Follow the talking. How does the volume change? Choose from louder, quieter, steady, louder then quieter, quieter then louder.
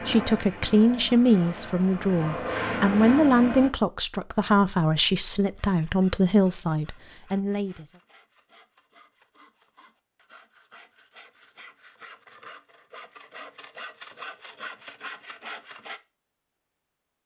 steady.